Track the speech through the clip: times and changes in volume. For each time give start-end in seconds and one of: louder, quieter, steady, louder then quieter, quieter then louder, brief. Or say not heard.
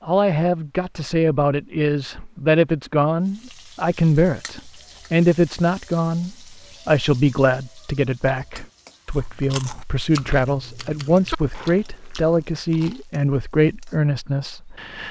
0.0-15.0 steady.